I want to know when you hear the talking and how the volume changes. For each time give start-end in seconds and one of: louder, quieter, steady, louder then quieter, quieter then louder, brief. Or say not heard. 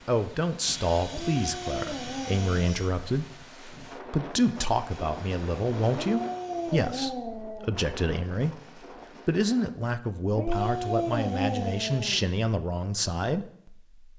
0.1-13.9 steady.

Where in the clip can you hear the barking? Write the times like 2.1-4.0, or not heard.
1.1-2.6, 5.9-7.8, 10.3-12.3.